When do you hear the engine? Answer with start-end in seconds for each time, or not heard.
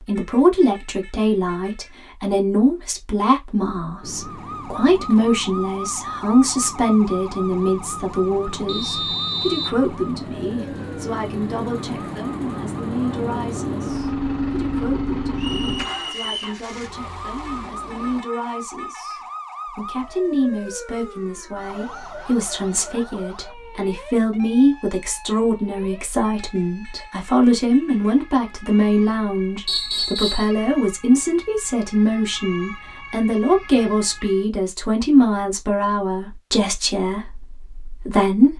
4.0-18.2.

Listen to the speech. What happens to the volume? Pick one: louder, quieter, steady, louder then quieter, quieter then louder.
quieter then louder.